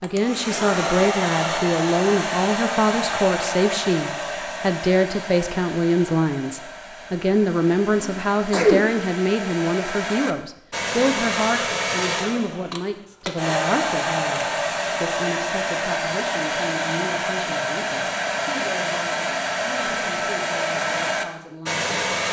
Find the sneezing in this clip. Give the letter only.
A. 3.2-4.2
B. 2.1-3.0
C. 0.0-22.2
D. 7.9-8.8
D.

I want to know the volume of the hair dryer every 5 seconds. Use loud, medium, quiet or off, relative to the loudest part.
loud, medium, loud, loud, loud.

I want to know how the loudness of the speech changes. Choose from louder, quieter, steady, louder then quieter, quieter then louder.
quieter.